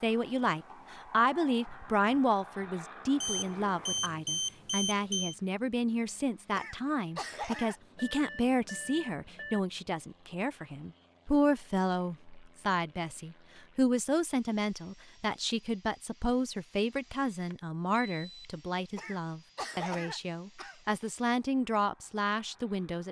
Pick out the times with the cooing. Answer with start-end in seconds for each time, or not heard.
not heard.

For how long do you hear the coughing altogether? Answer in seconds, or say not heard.
3 s.